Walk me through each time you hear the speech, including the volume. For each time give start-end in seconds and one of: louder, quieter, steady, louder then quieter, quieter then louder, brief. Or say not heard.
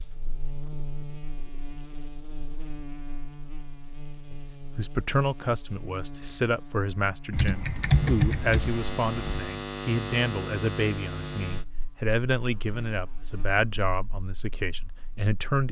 4.3-15.6 steady.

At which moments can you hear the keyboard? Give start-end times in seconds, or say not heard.
7.3-9.5.